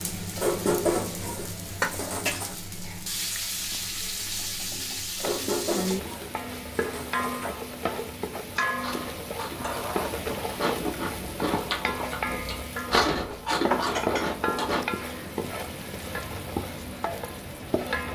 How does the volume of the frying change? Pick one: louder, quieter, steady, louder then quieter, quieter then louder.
steady.